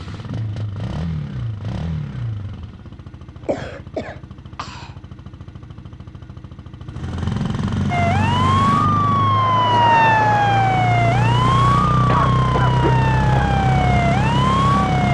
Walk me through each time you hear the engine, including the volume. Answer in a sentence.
The engine can be heard from 0.0 to 15.1 s, getting quieter then louder.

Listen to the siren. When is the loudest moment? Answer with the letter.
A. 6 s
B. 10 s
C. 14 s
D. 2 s
B.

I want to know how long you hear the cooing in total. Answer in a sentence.
You can't hear the cooing here.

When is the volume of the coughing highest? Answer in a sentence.
The loudest moment of the coughing is at 12 seconds.